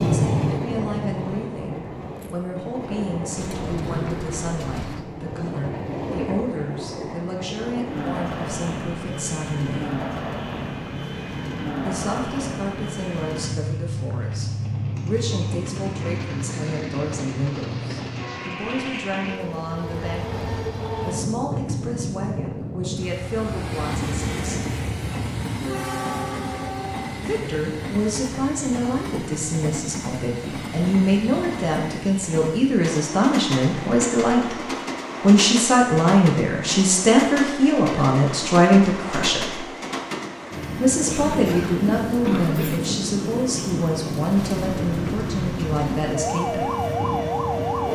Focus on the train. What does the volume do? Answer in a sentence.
The loudness of the train stays about the same.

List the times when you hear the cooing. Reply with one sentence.
You can hear the cooing from 3.4 to 5.0 s and from 44.5 to 46.1 s.